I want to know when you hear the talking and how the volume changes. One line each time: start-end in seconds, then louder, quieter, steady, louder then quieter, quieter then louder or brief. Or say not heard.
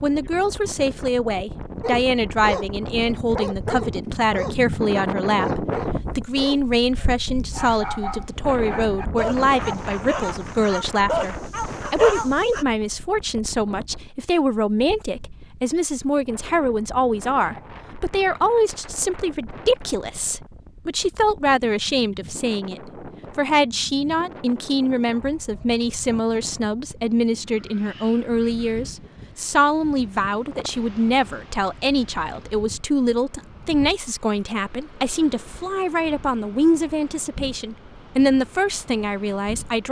0.0-39.8 steady.